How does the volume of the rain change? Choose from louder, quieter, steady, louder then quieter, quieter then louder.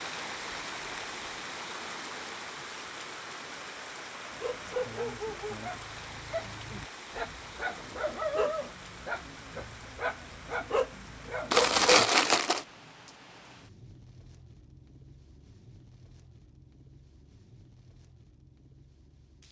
quieter.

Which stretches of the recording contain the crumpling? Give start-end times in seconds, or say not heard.
11.5-12.7.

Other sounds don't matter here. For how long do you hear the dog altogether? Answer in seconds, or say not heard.
8 s.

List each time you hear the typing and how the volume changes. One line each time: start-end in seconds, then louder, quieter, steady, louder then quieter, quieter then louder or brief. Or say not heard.
not heard.